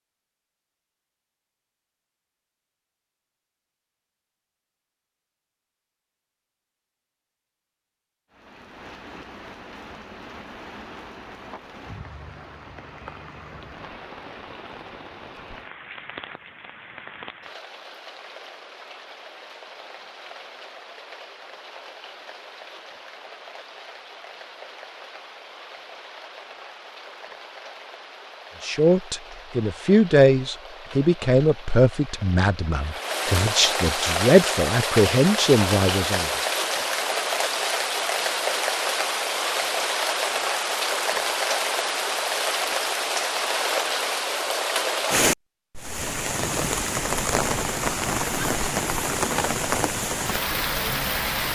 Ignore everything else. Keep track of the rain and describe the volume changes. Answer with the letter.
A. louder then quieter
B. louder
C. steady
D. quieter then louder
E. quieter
B.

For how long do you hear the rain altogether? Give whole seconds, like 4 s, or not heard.
43 s.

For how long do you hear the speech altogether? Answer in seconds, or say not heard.
8 s.